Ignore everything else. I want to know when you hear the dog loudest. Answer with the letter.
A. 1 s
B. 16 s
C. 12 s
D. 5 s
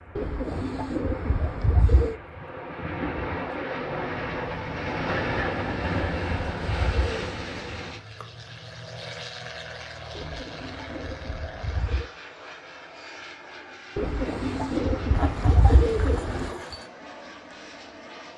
B.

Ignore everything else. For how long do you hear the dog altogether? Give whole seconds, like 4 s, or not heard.
2 s.